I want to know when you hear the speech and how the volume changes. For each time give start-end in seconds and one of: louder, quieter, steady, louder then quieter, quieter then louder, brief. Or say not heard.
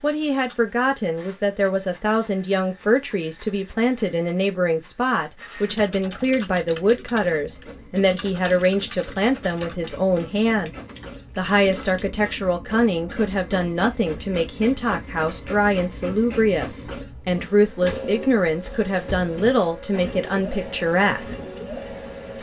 0.0-10.7 steady
11.3-21.4 steady.